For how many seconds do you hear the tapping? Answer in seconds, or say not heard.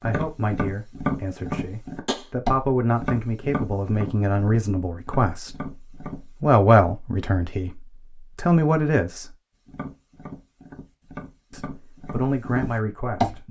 10 s.